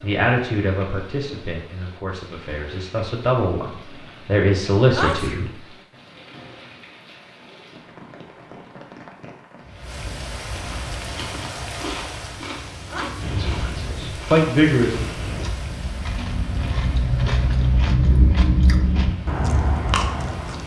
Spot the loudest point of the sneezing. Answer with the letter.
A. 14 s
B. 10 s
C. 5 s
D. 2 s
C.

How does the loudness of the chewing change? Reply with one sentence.
The loudness of the chewing goes up.